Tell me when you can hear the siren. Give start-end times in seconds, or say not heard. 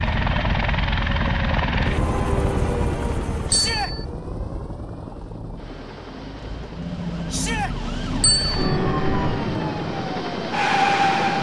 0.0-11.3.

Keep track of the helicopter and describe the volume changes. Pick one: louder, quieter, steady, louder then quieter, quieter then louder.
quieter then louder.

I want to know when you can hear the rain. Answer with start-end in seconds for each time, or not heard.
not heard.